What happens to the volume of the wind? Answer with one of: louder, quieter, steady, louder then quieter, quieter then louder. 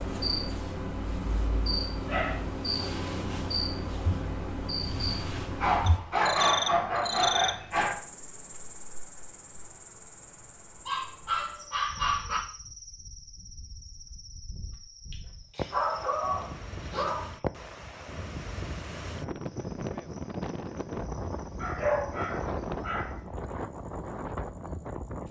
louder.